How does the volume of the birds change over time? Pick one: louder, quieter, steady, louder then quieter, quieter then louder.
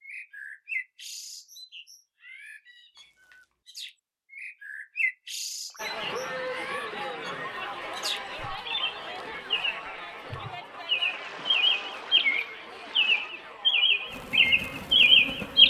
louder.